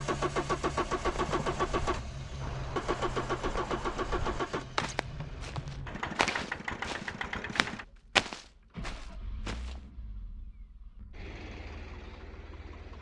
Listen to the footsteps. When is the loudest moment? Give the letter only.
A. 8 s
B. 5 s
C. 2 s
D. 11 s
A.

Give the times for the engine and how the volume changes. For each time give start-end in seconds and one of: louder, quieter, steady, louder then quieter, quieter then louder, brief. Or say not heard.
0.0-12.9 quieter.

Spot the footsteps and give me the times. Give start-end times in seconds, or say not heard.
0.9-9.8.